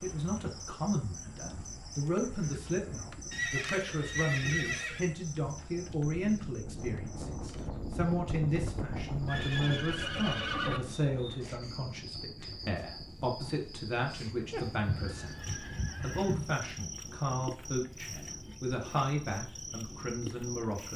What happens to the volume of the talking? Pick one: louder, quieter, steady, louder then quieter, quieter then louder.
steady.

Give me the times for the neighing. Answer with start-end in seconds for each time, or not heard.
3.3-5.0, 9.2-10.8, 14.8-16.4.